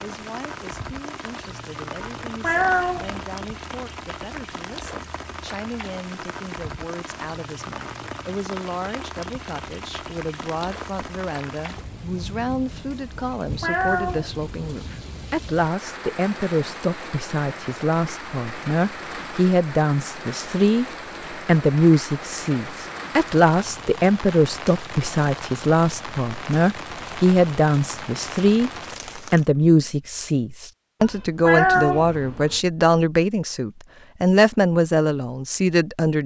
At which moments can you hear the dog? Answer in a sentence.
The dog can't be heard in this clip.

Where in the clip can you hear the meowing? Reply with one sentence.
The meowing can be heard from 2.0 to 3.2 s, from 13.2 to 14.8 s and from 31.0 to 32.6 s.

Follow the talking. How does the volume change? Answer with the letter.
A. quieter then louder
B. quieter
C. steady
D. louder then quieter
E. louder
E.